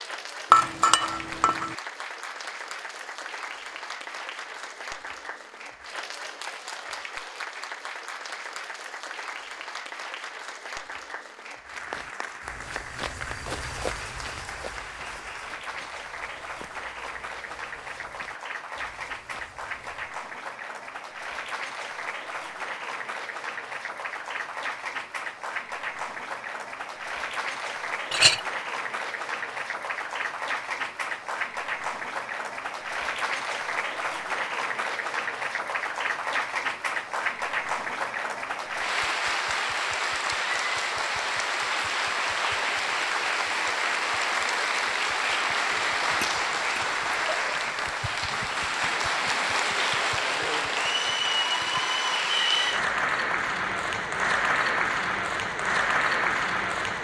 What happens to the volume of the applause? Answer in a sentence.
The loudness of the applause goes up.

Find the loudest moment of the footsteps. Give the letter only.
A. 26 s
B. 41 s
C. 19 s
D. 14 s
D.